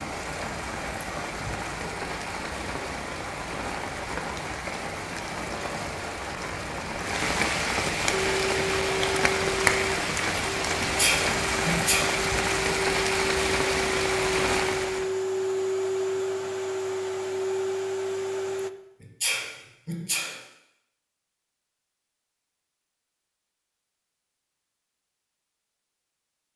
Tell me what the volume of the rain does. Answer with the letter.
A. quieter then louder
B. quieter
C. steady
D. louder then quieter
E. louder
E.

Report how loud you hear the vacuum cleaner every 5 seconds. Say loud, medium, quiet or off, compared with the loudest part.
off, loud, loud, loud, off, off.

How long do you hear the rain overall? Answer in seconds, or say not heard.
15 s.